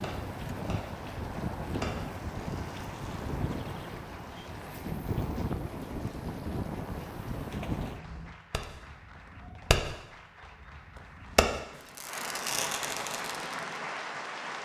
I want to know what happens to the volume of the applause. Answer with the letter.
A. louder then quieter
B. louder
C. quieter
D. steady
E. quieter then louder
B.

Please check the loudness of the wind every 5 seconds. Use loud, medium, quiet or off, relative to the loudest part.
loud, loud, quiet.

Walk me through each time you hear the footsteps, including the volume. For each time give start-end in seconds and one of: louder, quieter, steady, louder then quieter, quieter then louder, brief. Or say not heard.
not heard.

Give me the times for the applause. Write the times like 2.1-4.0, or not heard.
0.1-14.6.